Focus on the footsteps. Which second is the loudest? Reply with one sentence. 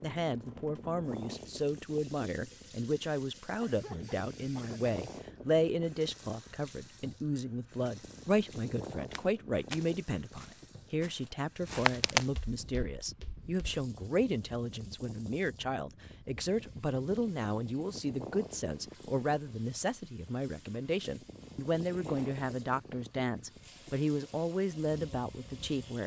The loudest moment of the footsteps is at 12 seconds.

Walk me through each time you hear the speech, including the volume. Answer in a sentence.
The speech can be heard from 0.0 to 26.0 s, at a steady volume.